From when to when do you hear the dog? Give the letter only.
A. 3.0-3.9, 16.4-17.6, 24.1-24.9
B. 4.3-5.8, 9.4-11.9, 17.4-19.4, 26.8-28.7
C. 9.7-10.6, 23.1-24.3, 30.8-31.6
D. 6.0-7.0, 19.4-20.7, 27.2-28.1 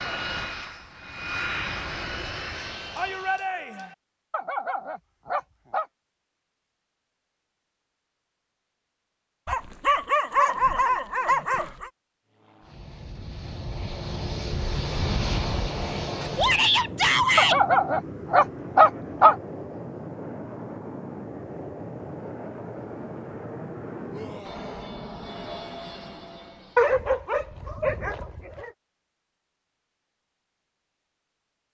B.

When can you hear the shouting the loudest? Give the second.
17 s.